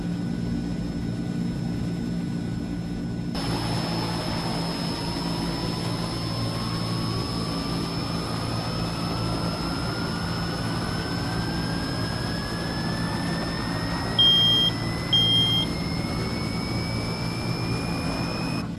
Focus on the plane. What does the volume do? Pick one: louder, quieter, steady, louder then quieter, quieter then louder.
steady.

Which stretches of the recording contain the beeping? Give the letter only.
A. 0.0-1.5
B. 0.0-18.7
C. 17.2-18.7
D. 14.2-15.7
D.